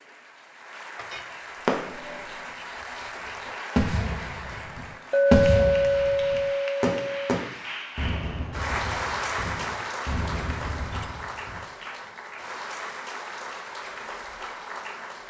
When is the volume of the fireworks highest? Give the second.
5 s.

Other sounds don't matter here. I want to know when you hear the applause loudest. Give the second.
9 s.